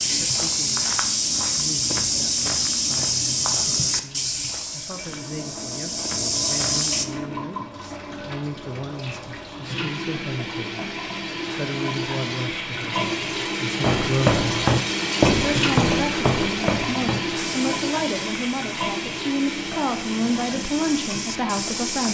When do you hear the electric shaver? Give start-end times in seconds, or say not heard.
not heard.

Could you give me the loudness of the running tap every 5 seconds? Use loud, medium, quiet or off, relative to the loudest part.
quiet, medium, loud, loud, medium.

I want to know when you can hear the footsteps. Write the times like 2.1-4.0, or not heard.
0.0-7.0, 13.8-22.0.